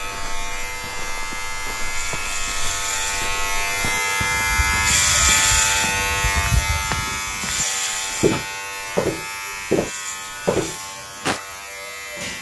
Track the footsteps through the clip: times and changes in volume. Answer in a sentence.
You can hear the footsteps from 0.0 to 11.4 s, getting louder.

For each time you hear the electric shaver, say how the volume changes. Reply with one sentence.
The electric shaver can be heard from 0.0 to 12.3 s, getting louder then quieter.